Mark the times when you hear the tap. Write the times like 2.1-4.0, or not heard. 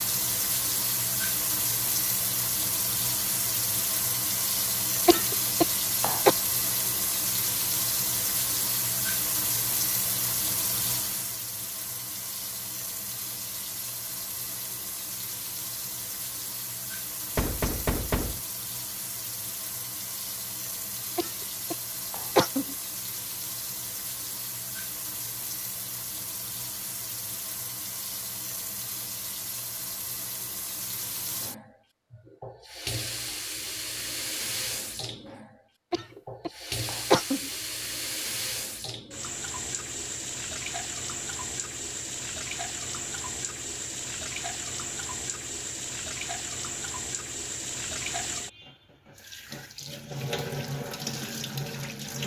0.0-52.2.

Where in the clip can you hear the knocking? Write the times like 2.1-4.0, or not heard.
17.4-18.4.